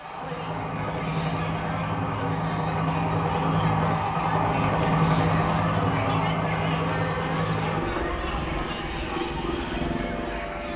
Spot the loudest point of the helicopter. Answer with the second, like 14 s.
5 s.